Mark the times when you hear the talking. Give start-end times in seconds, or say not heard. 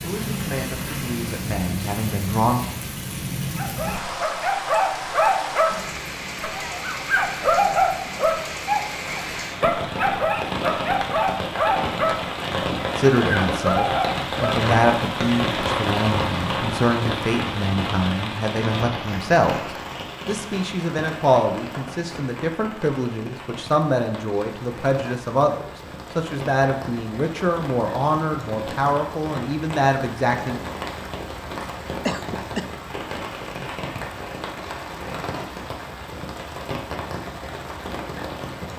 0.0-2.6, 12.9-19.6, 20.2-30.6.